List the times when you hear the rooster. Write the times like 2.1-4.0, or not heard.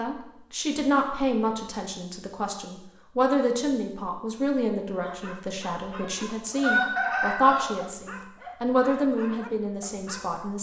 5.8-7.7.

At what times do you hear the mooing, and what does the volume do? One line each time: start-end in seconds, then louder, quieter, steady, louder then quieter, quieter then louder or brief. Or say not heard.
not heard.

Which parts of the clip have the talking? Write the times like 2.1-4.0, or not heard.
0.0-10.5.